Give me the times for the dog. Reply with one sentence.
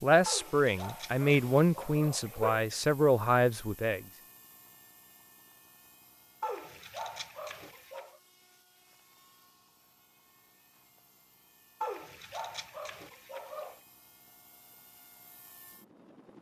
The dog can be heard from 0.2 to 2.6 s, from 6.4 to 8.2 s and from 11.8 to 13.8 s.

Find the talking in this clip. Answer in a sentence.
You can hear the talking from 0.0 to 4.0 s.